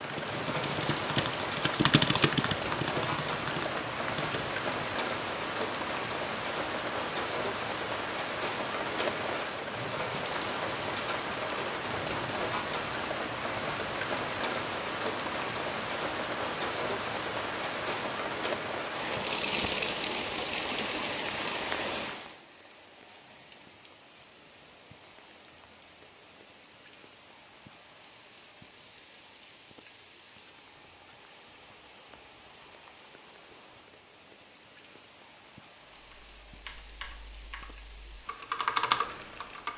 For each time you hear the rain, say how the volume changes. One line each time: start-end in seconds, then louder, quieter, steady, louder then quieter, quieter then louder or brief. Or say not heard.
0.0-39.7 quieter.